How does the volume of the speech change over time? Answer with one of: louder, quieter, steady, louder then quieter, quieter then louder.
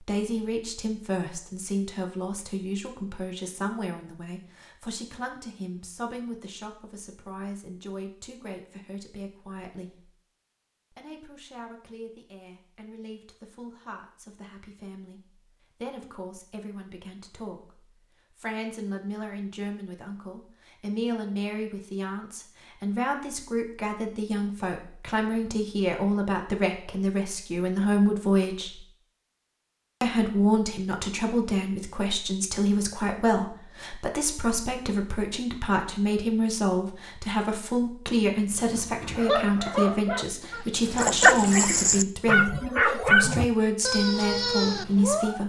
quieter then louder.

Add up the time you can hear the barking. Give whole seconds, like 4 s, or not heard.
7 s.